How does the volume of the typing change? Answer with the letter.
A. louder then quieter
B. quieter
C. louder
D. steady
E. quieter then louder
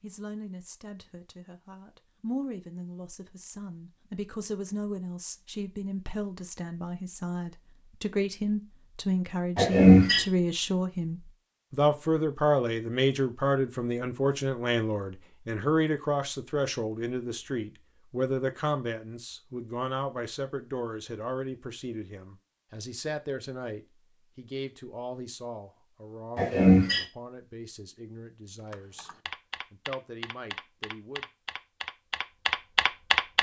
C.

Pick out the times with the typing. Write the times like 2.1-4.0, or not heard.
28.6-33.3.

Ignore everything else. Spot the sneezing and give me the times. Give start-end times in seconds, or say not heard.
9.6-10.2, 26.4-27.1.